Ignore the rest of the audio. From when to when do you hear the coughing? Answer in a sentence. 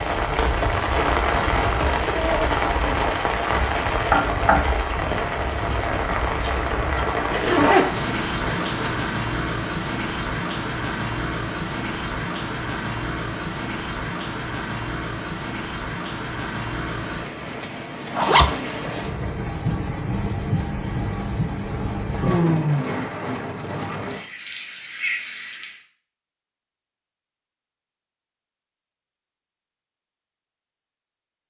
You can't hear the coughing here.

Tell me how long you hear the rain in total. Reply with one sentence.
The rain can be heard for 26 seconds in total.